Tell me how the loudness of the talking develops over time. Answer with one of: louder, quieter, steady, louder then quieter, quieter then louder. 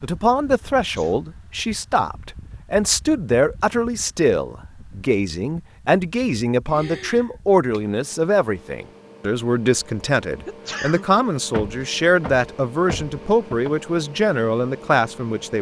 steady.